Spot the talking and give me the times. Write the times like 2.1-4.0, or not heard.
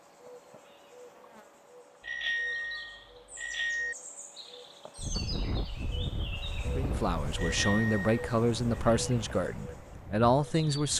6.8-10.9.